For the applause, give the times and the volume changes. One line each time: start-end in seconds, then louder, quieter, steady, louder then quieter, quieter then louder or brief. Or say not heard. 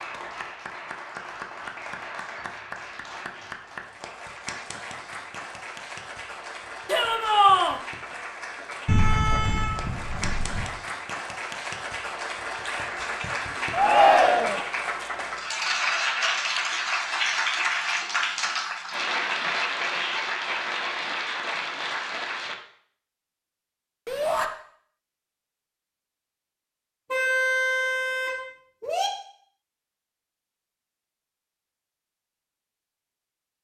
0.0-22.6 louder.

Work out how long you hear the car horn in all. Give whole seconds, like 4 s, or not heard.
4 s.